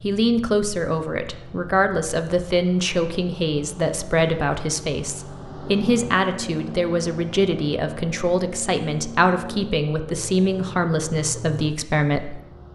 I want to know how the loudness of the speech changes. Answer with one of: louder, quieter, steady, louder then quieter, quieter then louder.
steady.